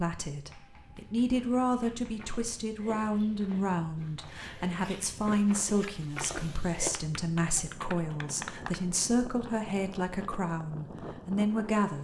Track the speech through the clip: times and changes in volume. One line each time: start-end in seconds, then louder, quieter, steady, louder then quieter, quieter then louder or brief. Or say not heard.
0.0-11.9 steady.